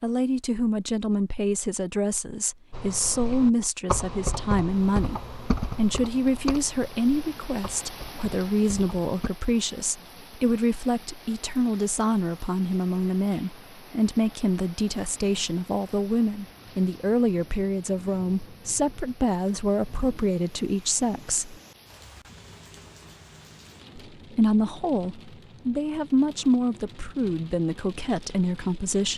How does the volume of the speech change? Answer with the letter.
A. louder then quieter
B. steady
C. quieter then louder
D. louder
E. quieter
B.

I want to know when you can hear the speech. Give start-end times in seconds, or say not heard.
0.0-21.6, 23.9-29.1.